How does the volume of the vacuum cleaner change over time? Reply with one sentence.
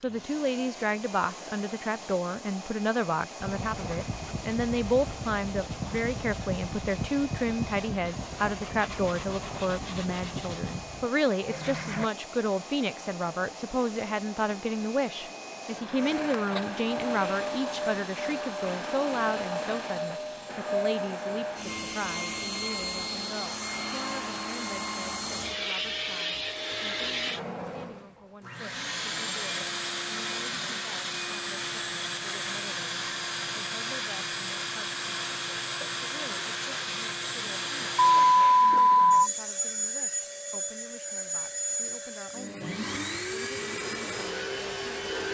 The volume of the vacuum cleaner goes up.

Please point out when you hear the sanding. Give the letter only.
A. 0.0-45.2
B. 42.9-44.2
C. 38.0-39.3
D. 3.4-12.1
D.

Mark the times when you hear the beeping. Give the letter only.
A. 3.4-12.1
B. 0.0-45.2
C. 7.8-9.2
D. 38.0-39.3
D.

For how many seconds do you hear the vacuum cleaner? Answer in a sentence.
You can hear the vacuum cleaner for 45 seconds altogether.